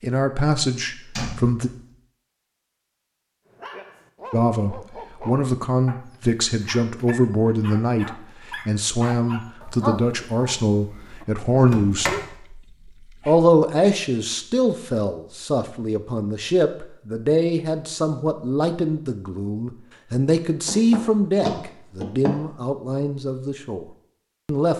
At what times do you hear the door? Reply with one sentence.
The door can be heard from 1.1 to 1.6 s, from 11.6 to 12.2 s and from 20.6 to 22.4 s.